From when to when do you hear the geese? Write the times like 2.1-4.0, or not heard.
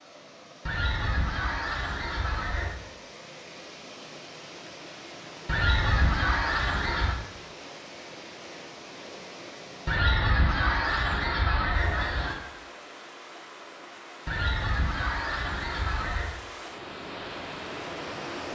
0.7-2.8, 5.5-7.2, 9.8-12.3, 14.2-16.4.